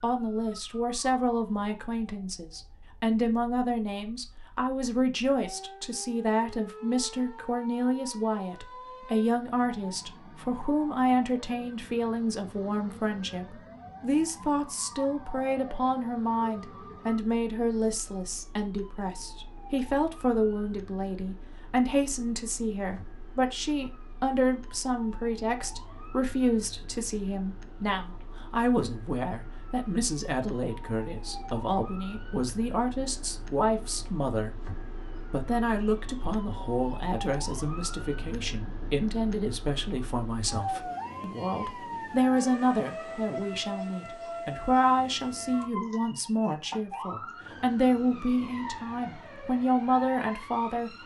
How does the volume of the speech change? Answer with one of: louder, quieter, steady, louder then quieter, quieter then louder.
steady.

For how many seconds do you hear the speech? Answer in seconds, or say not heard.
50 s.